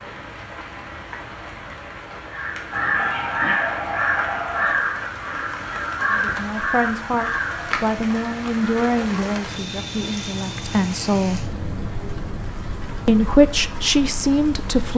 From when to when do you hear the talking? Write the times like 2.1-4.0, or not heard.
6.1-11.4, 13.1-14.9.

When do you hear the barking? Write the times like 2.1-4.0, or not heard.
2.7-4.8.